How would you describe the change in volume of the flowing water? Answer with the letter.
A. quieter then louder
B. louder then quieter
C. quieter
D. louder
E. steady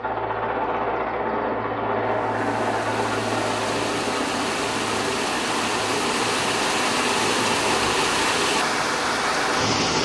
D.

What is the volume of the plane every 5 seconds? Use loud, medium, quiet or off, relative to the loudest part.
loud, medium.